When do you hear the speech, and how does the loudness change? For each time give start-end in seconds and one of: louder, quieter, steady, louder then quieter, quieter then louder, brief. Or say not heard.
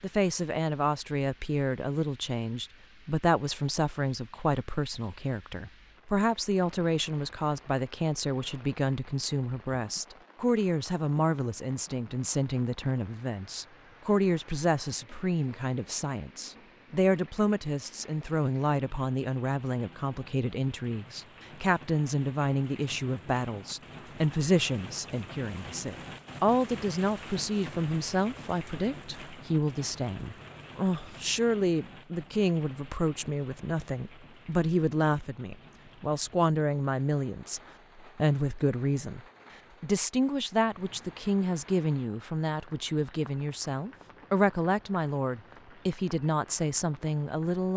0.0-39.2 steady
39.8-47.7 steady.